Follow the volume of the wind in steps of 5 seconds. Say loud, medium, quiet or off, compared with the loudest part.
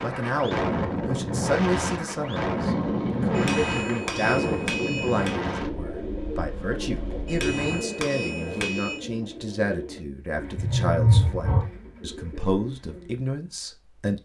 loud, medium, off.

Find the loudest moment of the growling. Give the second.
11 s.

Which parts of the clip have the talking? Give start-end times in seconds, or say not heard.
0.0-14.2.